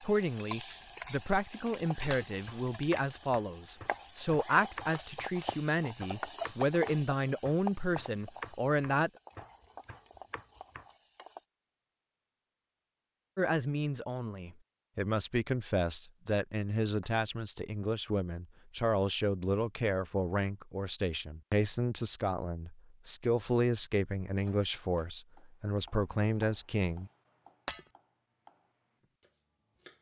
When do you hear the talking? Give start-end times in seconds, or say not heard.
0.0-9.1, 13.3-27.1.